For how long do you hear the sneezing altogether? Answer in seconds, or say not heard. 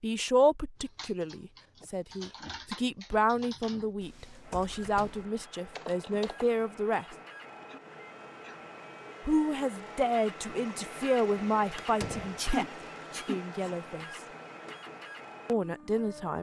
3 s.